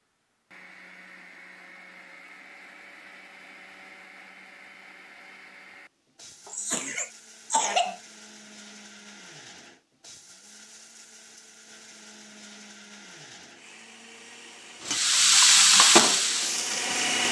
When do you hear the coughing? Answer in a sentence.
The coughing can be heard from 6.5 to 8.0 s.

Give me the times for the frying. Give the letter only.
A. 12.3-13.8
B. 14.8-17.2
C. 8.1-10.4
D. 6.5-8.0
B.